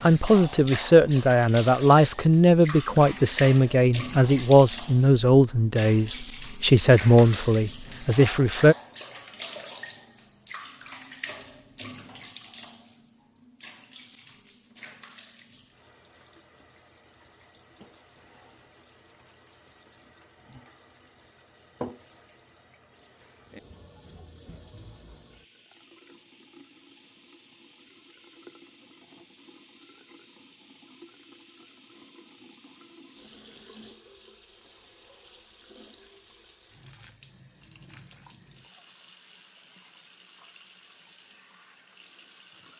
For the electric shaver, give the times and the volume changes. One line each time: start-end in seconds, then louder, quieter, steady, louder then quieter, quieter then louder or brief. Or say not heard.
not heard.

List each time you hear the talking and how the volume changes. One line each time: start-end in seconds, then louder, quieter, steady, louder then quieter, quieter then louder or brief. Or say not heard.
0.0-8.8 steady.